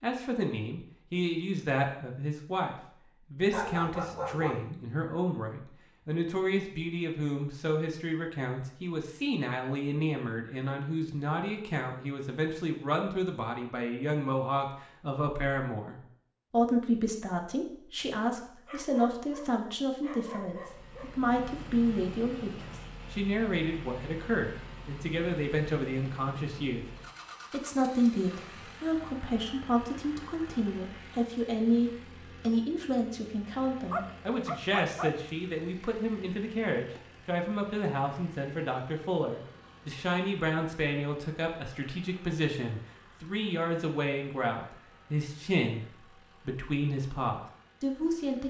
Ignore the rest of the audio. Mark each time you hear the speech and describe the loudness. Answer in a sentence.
You can hear the speech from 0.0 to 48.4 s, at a steady volume.